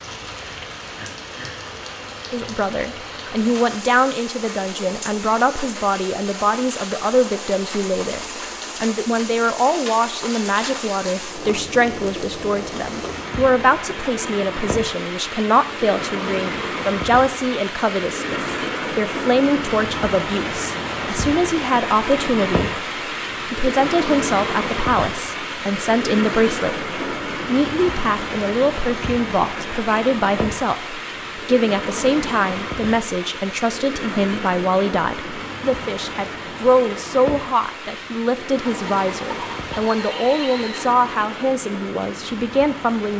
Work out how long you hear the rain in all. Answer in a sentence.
The rain can be heard for 43 seconds in total.